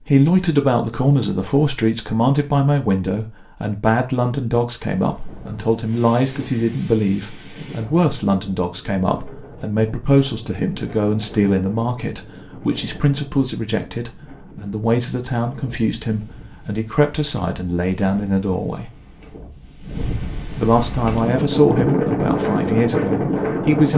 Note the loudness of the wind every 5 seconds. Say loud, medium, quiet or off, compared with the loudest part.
off, quiet, quiet, quiet, loud.